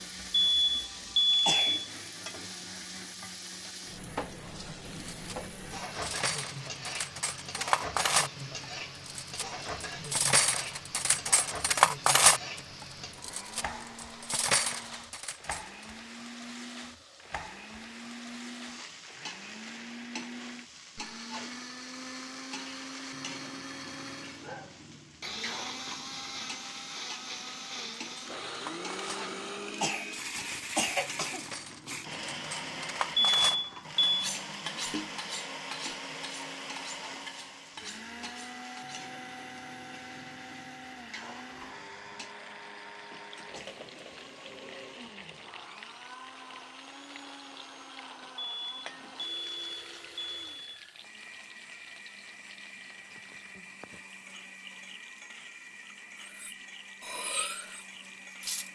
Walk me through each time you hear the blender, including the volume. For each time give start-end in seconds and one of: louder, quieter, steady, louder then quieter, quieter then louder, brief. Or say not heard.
0.0-58.6 louder then quieter.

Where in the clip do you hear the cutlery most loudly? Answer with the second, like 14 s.
12 s.